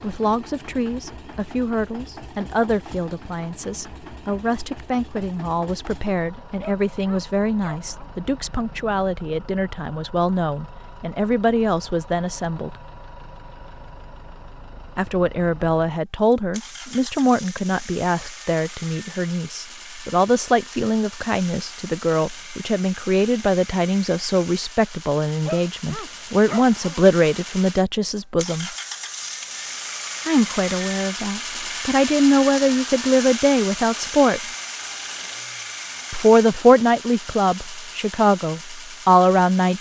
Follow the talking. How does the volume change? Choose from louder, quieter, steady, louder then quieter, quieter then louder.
louder.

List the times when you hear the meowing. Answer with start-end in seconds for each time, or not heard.
not heard.